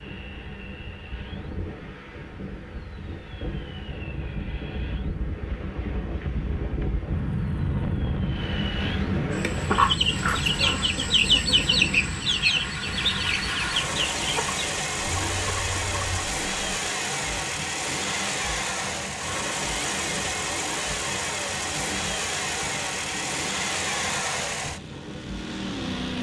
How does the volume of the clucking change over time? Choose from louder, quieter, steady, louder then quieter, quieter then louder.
quieter.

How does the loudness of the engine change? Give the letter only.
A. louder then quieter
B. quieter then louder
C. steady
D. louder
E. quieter
D.